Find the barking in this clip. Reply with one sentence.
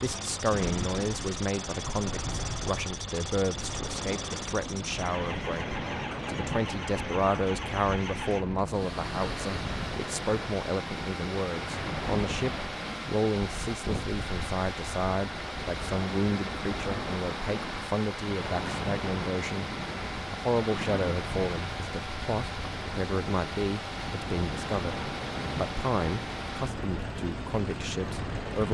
You can't hear the barking here.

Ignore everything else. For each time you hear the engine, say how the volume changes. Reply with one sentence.
The engine can be heard from 0.0 to 28.7 s, at a steady volume.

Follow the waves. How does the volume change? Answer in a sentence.
The volume of the waves stays about the same.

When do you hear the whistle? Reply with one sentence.
You can't hear the whistle here.